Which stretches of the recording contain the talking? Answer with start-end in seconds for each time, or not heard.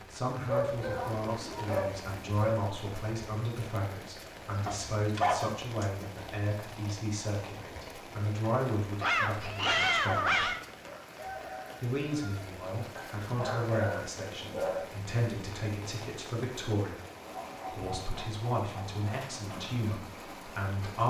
0.1-10.6, 11.8-17.0, 17.7-21.0.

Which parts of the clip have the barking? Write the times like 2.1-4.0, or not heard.
0.5-2.6, 4.7-6.0, 9.0-10.6, 12.9-14.9, 17.3-19.2.